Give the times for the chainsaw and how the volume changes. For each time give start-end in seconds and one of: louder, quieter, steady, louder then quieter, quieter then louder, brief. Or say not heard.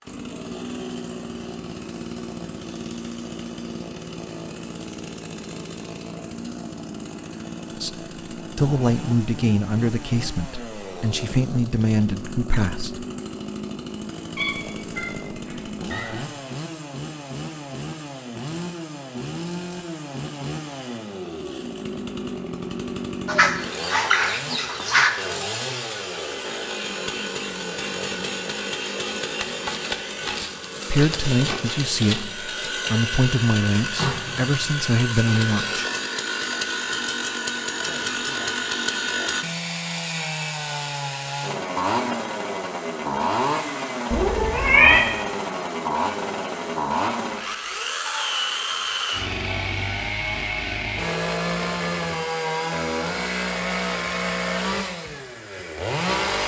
0.0-56.4 louder.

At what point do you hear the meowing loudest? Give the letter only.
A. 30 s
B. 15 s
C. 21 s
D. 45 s
D.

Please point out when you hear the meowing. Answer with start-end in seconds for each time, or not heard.
14.3-16.2, 44.1-45.0.